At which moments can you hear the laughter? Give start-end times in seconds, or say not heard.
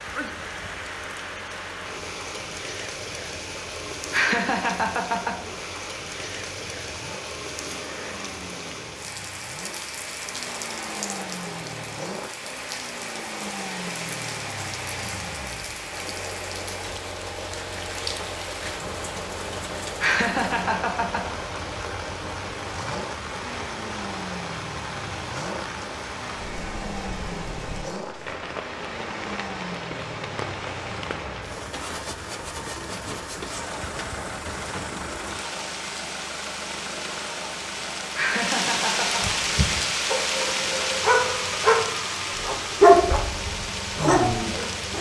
4.1-5.3, 20.0-21.2, 38.1-39.2.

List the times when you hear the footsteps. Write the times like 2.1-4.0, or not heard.
not heard.